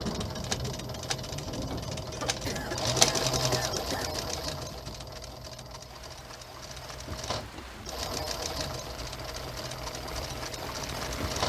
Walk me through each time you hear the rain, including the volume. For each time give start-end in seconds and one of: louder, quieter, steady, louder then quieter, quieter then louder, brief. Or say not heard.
0.0-11.4 quieter then louder.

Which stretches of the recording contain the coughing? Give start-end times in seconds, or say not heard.
2.1-4.1.